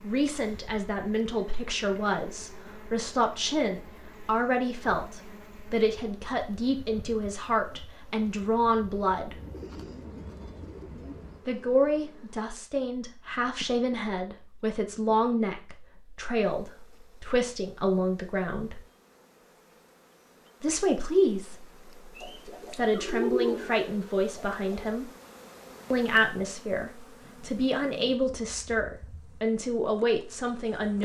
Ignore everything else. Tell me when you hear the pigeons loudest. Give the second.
23 s.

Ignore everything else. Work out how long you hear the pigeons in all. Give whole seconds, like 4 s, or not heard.
5 s.